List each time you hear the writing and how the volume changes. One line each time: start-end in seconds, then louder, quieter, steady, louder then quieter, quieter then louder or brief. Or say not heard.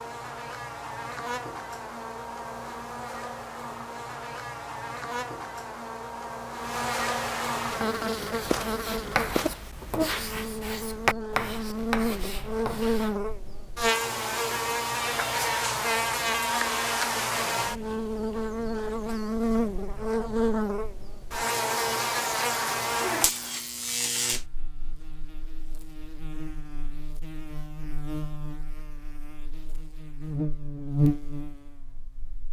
7.7-13.2 louder then quieter.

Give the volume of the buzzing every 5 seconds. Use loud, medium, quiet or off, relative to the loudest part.
medium, loud, loud, loud, loud, quiet, loud.